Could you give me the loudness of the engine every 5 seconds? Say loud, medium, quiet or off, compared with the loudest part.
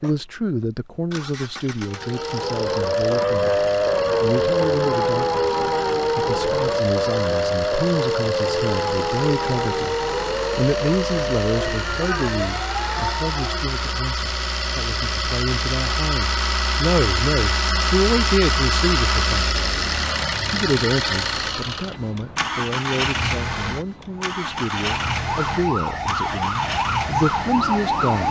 quiet, medium, medium, loud, loud, medium.